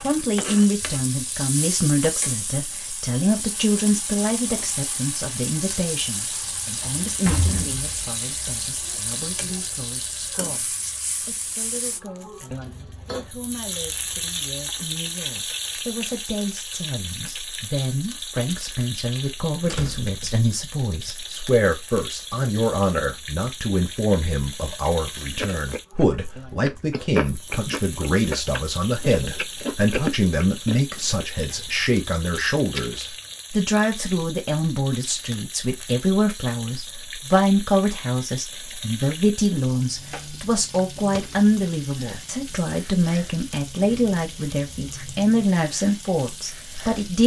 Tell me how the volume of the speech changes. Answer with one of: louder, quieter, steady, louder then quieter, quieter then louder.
quieter then louder.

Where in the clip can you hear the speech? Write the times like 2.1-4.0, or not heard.
0.0-47.2.